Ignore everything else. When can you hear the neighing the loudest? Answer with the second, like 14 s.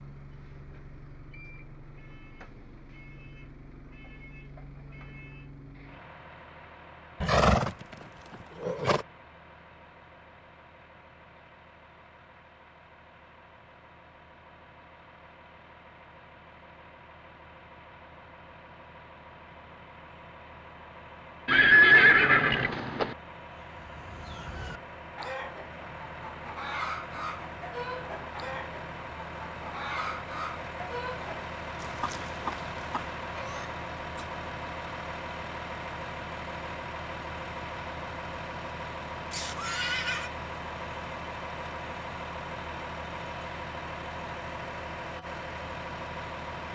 22 s.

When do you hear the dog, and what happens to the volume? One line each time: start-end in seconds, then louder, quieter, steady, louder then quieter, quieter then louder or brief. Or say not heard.
not heard.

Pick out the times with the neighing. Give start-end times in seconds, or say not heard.
7.2-7.8, 8.6-9.1, 21.4-23.1, 39.3-40.3.